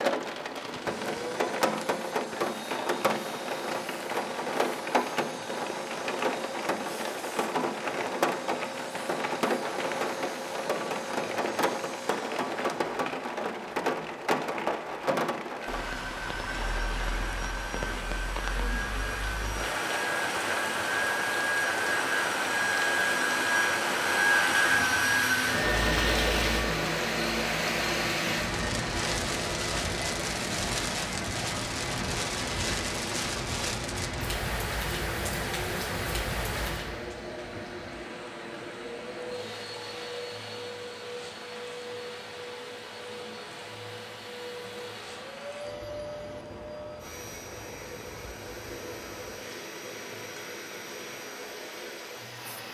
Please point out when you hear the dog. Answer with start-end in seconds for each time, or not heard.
not heard.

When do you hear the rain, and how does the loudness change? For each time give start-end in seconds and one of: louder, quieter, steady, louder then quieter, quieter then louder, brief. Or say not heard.
0.0-52.6 quieter.